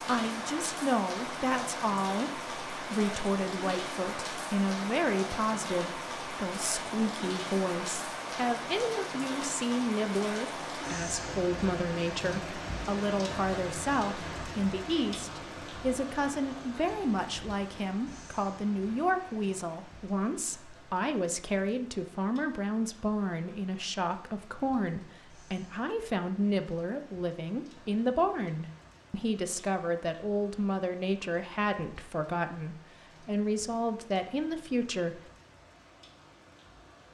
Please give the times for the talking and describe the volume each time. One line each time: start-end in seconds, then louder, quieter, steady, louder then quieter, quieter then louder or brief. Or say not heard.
0.1-35.2 steady.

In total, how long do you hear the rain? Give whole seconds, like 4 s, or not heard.
37 s.